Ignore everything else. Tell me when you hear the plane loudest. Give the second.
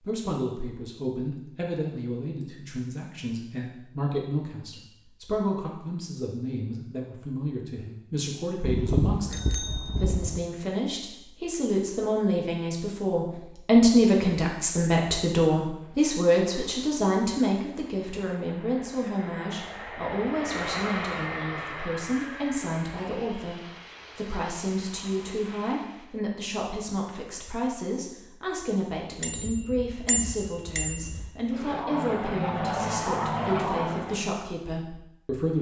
33 s.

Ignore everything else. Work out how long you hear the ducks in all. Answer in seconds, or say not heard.
not heard.